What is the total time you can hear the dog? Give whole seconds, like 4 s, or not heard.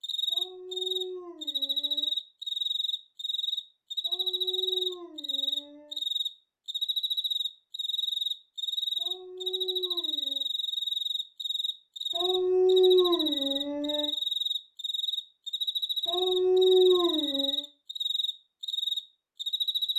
9 s.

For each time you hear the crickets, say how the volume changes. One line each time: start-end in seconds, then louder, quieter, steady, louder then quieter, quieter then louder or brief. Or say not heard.
0.0-19.9 steady.